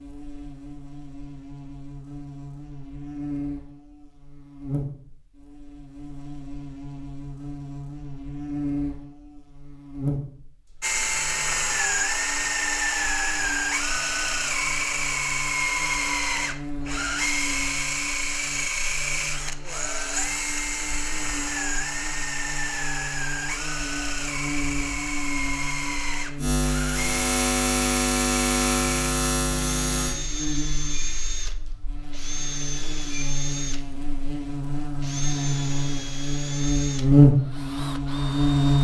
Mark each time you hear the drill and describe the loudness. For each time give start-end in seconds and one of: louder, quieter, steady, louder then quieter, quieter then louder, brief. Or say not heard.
10.8-38.8 quieter.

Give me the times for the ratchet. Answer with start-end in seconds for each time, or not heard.
not heard.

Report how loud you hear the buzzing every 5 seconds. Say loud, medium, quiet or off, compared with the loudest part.
quiet, quiet, quiet, quiet, quiet, medium, quiet, loud.